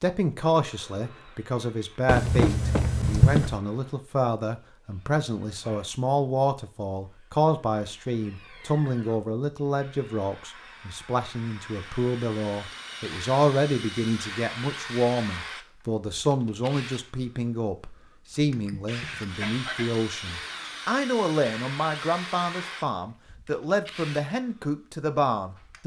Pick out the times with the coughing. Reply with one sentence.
The coughing can be heard from 2.0 to 3.5 s and from 18.6 to 20.1 s.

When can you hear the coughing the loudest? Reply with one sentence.
The loudest moment of the coughing is at 3 seconds.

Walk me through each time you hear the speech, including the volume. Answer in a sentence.
The speech can be heard from 0.0 to 25.8 s, at a steady volume.